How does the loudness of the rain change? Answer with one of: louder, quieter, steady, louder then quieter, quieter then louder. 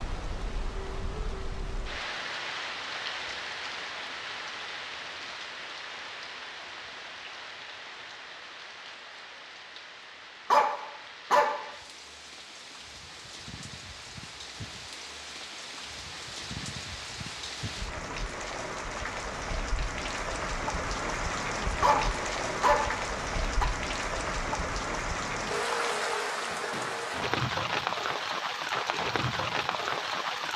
quieter then louder.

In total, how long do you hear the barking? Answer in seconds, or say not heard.
3 s.